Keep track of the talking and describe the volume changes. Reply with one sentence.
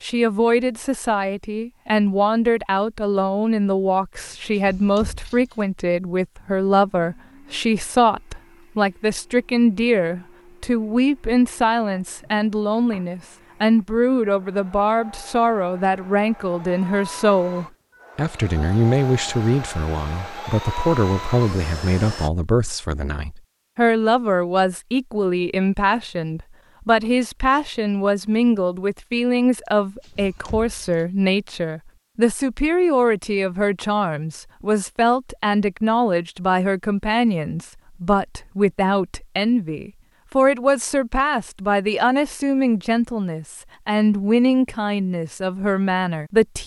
The volume of the talking stays about the same.